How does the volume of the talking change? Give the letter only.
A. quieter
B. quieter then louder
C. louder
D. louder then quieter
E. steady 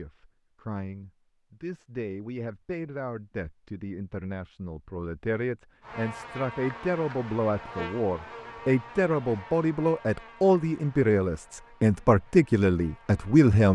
C.